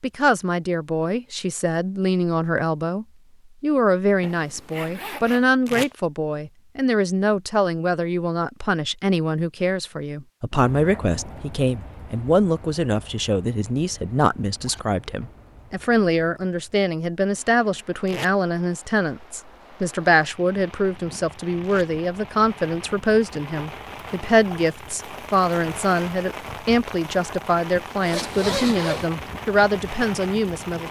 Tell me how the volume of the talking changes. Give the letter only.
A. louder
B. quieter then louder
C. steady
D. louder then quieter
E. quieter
C.